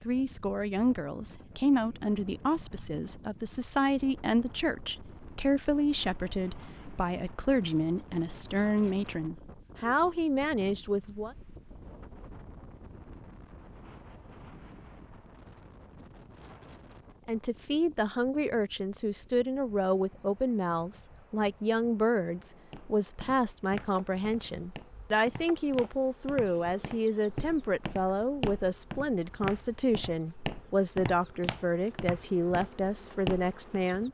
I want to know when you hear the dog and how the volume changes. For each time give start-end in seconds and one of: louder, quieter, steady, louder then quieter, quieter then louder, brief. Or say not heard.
not heard.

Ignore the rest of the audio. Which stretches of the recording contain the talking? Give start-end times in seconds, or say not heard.
0.0-11.3, 17.2-34.0.